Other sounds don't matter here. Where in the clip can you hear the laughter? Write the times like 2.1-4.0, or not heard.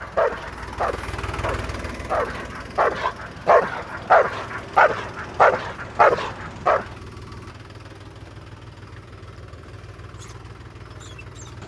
not heard.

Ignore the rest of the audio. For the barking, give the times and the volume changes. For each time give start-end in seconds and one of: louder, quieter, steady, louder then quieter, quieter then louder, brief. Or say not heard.
0.0-6.8 louder.